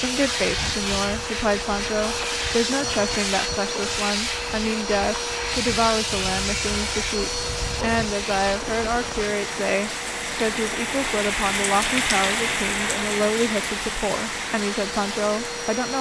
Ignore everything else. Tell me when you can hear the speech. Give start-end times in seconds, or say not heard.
0.0-15.9.